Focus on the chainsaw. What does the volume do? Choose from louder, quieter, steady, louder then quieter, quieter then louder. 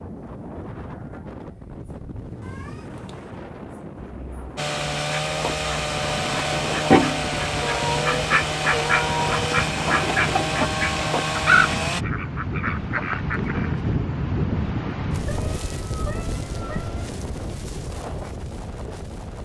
steady.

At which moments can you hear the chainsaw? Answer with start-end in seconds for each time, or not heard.
4.5-12.1.